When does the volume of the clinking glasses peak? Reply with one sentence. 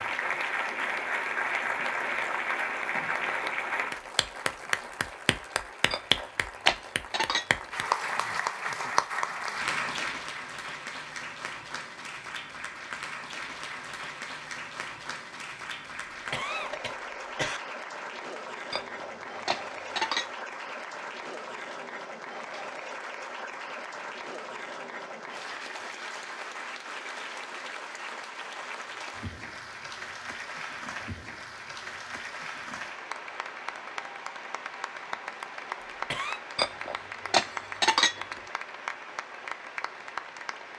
The volume of the clinking glasses peaks at 38 seconds.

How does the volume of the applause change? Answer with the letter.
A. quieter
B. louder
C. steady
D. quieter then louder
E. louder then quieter
A.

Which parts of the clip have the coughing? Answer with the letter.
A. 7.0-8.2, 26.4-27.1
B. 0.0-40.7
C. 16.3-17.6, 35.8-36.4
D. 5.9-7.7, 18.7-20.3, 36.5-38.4
C.